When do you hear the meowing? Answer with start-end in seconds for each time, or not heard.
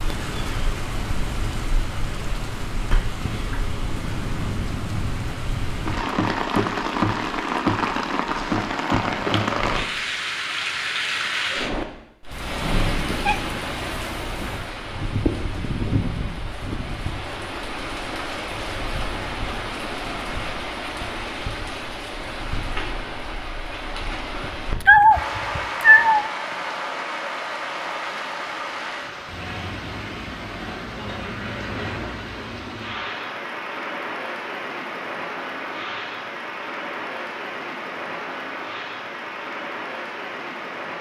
12.3-14.7, 24.4-26.3.